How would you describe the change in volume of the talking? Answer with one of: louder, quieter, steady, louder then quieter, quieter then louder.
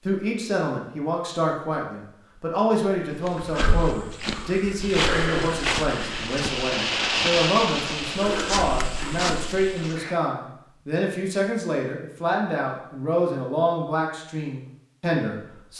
steady.